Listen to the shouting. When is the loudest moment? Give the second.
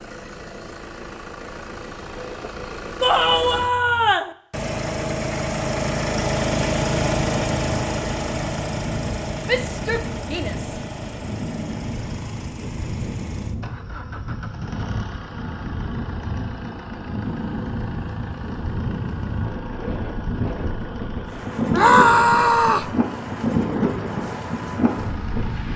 22 s.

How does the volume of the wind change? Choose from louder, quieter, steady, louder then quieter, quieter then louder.
louder.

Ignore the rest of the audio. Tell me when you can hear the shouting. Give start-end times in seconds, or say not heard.
3.0-4.3, 9.4-10.8, 21.7-22.9.